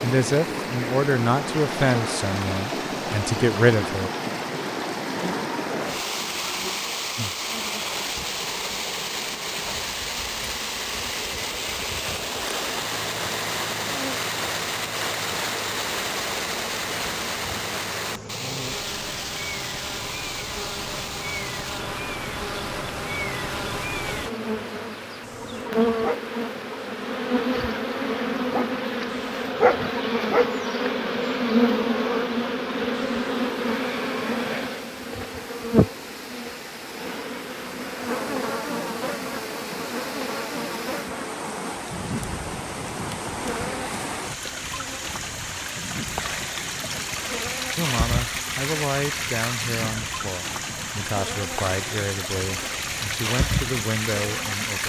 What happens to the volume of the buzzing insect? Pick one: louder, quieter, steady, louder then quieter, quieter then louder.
louder then quieter.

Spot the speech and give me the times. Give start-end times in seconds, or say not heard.
0.0-4.1, 47.8-54.8.